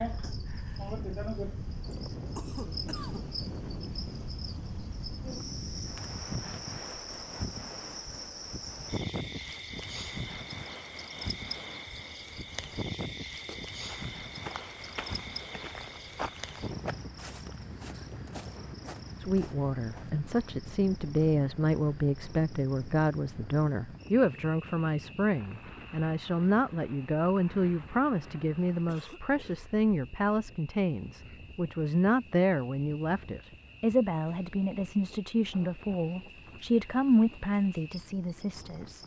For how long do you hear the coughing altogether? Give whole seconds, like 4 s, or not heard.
2 s.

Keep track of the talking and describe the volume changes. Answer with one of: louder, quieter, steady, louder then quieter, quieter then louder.
steady.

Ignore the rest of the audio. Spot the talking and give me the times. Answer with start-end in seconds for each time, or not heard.
19.2-39.0.